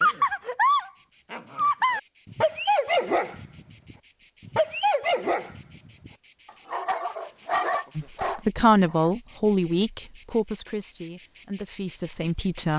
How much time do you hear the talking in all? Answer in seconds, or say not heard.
5 s.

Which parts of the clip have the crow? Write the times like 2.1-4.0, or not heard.
not heard.